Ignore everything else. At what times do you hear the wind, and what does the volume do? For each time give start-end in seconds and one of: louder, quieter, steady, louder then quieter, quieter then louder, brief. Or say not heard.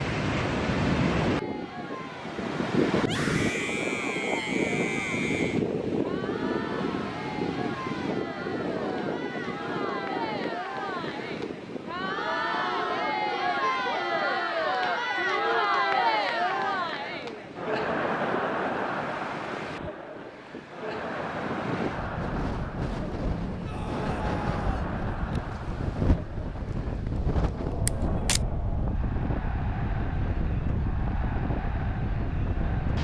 0.0-32.9 quieter then louder.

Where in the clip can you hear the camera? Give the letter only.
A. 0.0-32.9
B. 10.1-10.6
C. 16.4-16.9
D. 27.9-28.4
D.